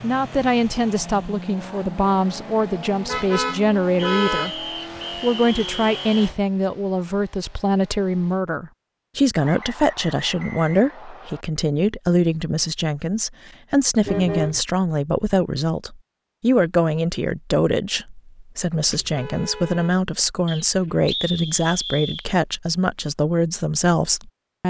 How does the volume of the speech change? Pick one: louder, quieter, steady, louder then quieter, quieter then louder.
steady.